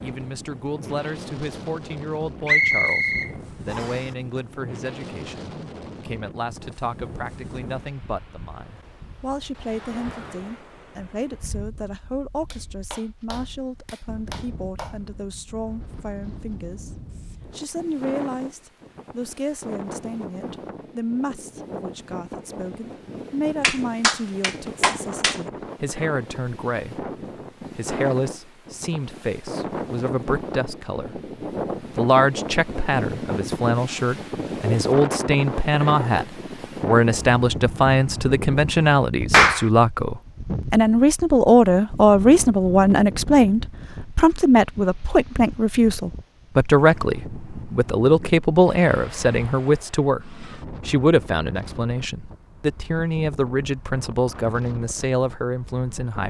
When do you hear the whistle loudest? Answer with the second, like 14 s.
3 s.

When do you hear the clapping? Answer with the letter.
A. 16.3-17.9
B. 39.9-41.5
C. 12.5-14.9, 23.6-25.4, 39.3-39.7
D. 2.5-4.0
C.